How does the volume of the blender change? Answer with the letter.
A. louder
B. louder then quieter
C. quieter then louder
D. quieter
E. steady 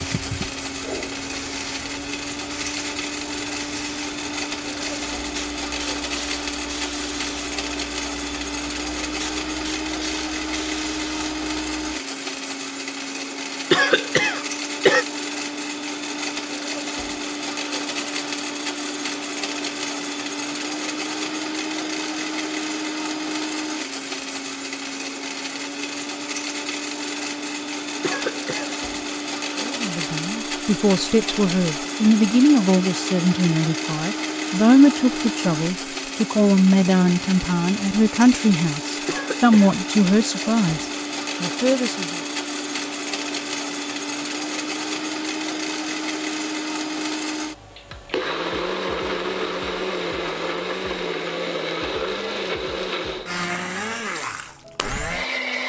E.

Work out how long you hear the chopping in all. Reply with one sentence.
The chopping can't be heard in this clip.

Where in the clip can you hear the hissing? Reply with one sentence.
The hissing can be heard from 0.0 to 12.0 s.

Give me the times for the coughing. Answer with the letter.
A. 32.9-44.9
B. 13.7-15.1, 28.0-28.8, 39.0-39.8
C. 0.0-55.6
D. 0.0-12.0
B.